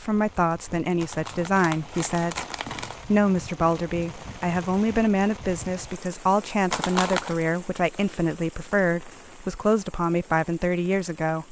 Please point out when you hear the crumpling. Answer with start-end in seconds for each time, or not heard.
1.0-3.0, 6.7-7.4.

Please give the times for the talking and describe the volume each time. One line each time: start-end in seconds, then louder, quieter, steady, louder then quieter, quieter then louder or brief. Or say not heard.
0.0-2.5 brief
3.0-11.4 steady.